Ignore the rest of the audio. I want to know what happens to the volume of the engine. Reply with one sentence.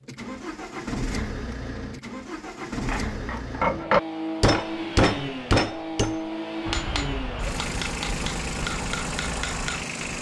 The loudness of the engine stays about the same.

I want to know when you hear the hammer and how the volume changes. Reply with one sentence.
The hammer can be heard from 2.9 to 10.1 s, getting quieter.